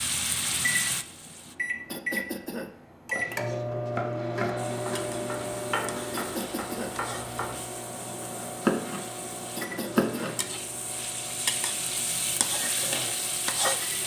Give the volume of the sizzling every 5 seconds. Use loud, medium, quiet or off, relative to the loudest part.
loud, quiet, loud.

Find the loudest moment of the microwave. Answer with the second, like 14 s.
4 s.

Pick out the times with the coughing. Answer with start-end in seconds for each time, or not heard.
1.9-2.8, 6.2-7.0, 9.6-10.4.